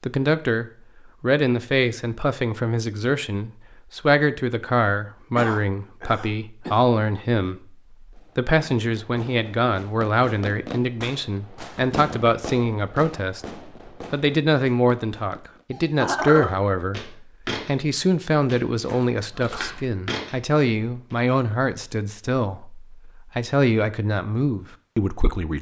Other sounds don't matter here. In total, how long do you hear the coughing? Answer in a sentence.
You can hear the coughing for 2 seconds altogether.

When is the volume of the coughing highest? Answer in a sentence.
The volume of the coughing peaks at 16 seconds.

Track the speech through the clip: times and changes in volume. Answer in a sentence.
The speech can be heard from 0.0 to 25.5 s, at a steady volume.